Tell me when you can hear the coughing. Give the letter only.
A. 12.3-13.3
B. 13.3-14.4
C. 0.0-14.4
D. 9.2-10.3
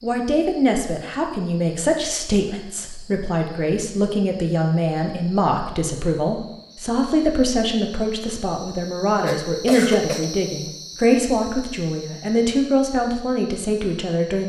D.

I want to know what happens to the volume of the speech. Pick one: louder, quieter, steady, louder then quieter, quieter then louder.
steady.